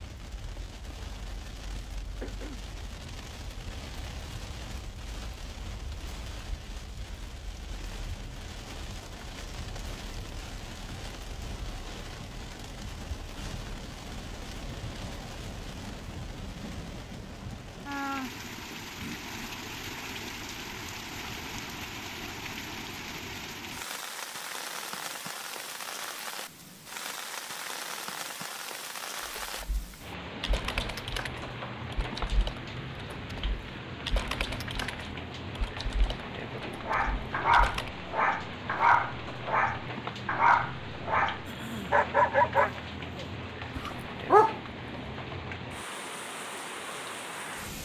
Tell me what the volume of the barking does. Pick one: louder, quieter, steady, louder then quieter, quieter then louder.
steady.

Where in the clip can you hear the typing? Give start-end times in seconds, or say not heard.
29.2-37.9.